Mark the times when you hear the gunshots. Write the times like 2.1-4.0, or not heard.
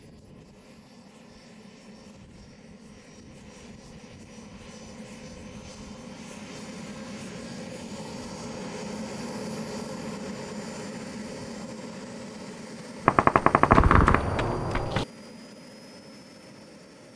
13.1-15.1.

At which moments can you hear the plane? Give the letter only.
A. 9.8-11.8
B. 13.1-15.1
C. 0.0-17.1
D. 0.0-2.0
C.